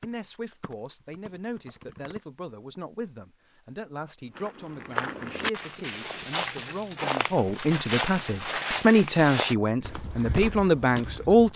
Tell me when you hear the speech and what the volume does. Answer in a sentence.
The speech can be heard from 0.0 to 11.5 s, getting louder.